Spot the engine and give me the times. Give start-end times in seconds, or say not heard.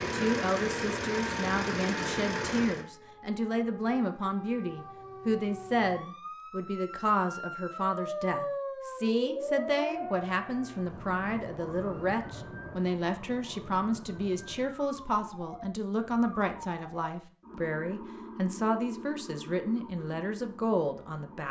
0.0-2.9.